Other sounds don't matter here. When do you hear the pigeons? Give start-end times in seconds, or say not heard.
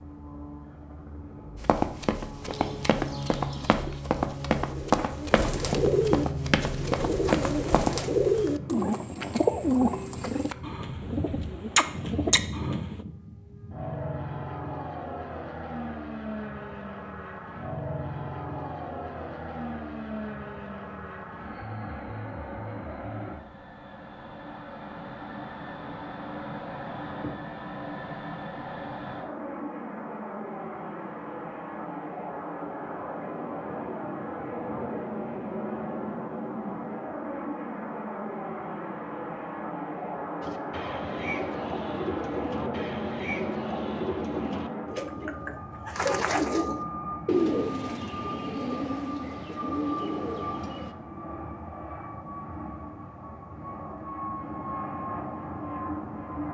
2.5-13.1, 40.4-51.0.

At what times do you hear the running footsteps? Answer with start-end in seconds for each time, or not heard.
1.6-8.0.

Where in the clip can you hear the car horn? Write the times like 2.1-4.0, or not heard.
not heard.